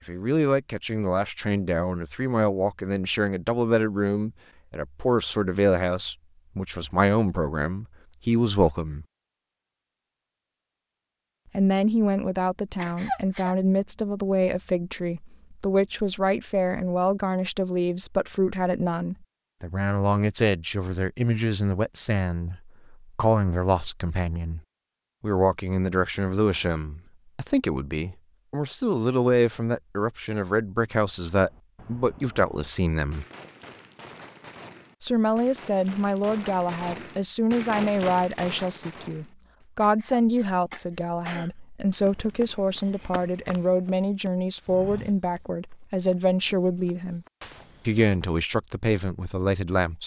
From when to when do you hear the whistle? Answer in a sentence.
The whistle can't be heard in this clip.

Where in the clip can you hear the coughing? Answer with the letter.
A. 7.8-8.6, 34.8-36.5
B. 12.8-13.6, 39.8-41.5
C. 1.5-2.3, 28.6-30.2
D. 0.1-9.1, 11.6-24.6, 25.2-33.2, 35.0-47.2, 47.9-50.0
B.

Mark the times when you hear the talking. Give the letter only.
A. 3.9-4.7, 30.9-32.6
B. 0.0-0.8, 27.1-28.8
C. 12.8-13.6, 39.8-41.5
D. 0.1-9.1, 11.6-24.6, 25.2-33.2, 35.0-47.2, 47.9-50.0
D.